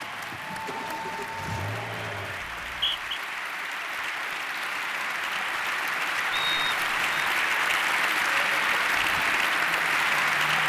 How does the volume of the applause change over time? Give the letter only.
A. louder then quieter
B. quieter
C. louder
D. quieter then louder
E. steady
C.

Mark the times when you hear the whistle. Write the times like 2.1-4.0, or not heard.
2.4-3.2, 6.3-7.0.